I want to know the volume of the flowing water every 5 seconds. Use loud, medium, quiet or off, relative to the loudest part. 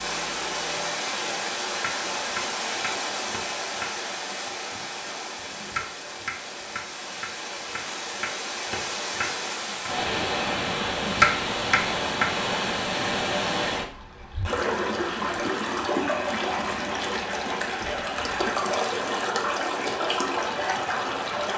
loud, medium, loud, loud, loud.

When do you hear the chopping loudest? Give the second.
11 s.